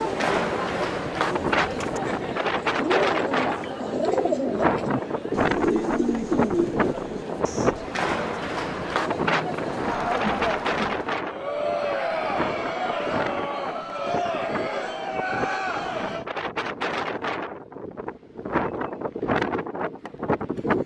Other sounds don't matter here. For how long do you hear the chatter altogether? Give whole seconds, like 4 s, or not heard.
16 s.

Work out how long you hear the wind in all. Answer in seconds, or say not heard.
21 s.